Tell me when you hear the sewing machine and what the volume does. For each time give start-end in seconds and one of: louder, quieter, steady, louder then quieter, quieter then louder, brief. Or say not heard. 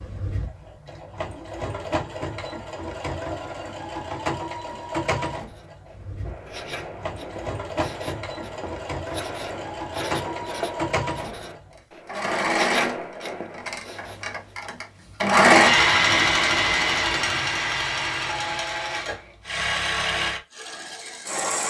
0.0-21.6 louder then quieter.